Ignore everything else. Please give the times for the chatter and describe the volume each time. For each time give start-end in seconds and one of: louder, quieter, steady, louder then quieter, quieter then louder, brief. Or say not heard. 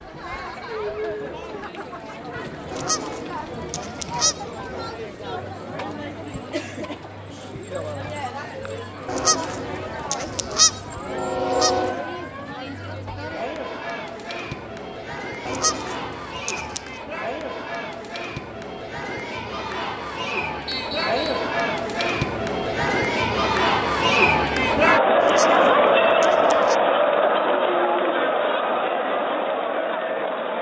0.0-30.5 louder.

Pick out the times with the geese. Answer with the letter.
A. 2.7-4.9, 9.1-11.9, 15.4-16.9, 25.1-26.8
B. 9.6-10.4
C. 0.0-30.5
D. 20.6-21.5
A.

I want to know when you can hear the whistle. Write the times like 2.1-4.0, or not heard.
20.6-21.5.